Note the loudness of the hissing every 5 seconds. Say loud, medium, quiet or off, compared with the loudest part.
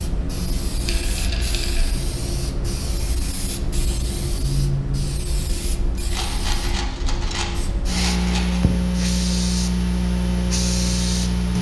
medium, loud, loud.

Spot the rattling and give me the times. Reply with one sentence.
The rattling can be heard from 0.8 to 1.9 s and from 6.0 to 8.7 s.